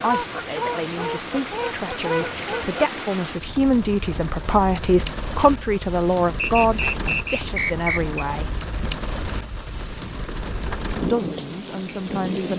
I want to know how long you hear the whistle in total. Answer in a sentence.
You can hear the whistle for 2 seconds altogether.